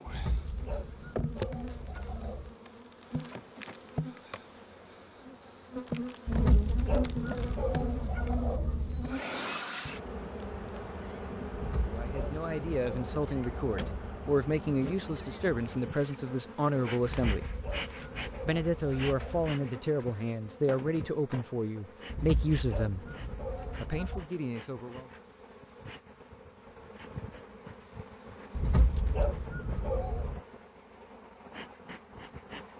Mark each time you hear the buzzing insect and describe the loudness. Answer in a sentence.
You can hear the buzzing insect from 0.0 to 32.7 s, getting quieter.